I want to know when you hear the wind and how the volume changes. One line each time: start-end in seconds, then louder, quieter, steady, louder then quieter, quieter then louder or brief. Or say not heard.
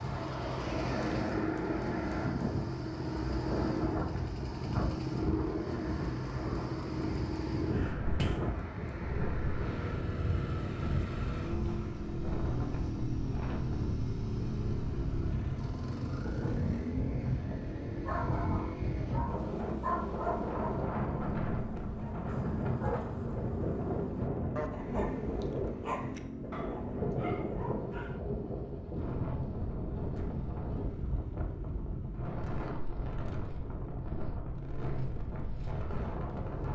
0.0-36.6 steady.